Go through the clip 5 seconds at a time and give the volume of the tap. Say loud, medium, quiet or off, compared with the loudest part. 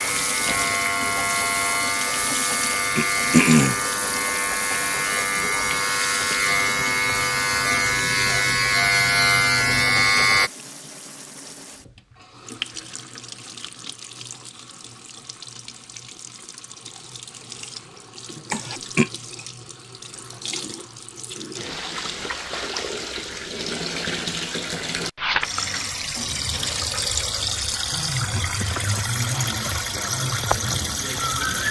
medium, medium, quiet, quiet, medium, loud, loud.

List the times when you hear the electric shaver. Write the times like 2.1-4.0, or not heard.
0.0-10.5.